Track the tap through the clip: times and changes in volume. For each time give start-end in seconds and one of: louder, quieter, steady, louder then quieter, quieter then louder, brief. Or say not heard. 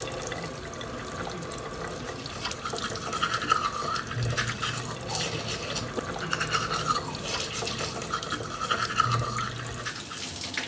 0.0-10.6 steady.